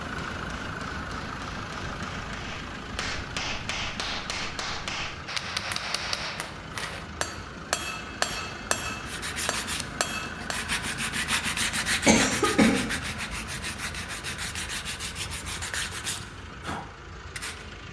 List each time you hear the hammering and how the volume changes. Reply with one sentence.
The hammering can be heard from 0.0 to 10.5 s, getting louder.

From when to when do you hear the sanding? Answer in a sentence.
You can hear the sanding from 9.1 to 17.6 s.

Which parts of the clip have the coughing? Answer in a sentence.
The coughing can be heard from 12.1 to 12.8 s.